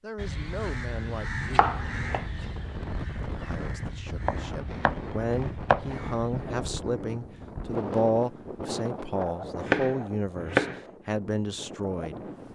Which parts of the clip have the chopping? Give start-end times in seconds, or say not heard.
1.4-2.2, 4.2-6.0, 9.4-10.8.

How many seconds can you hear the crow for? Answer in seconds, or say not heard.
6 s.